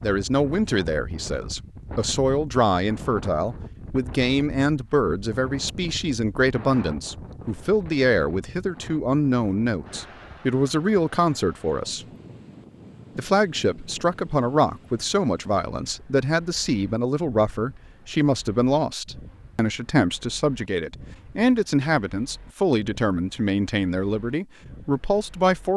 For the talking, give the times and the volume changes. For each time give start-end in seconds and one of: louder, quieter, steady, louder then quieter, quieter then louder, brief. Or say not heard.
0.0-12.1 steady
13.2-25.7 steady.